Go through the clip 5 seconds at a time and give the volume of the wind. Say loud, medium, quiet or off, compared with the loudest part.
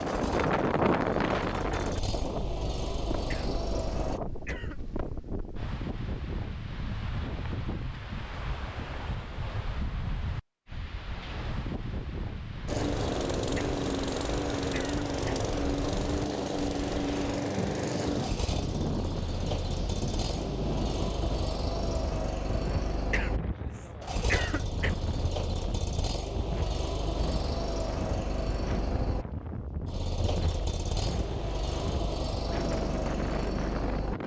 loud, medium, medium, medium, medium, medium, medium.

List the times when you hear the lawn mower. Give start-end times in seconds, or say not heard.
0.0-4.2, 12.7-34.2.